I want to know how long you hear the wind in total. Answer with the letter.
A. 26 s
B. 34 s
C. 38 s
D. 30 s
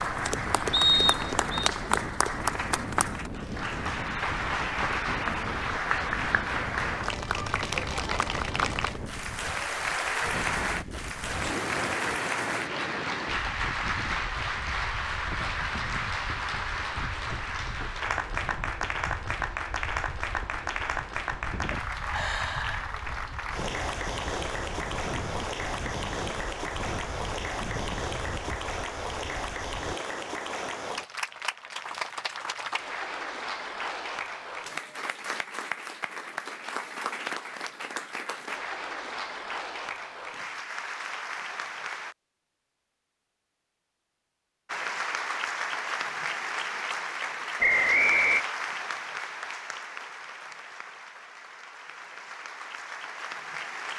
D.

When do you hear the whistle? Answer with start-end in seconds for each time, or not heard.
0.7-1.4, 47.6-48.5.